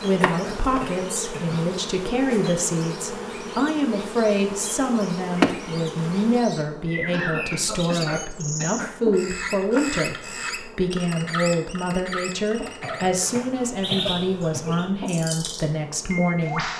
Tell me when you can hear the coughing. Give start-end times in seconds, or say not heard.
0.2-1.6, 7.1-8.9, 12.8-14.8.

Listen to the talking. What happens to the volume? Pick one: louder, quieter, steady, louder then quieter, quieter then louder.
steady.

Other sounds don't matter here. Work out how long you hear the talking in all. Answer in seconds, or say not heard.
17 s.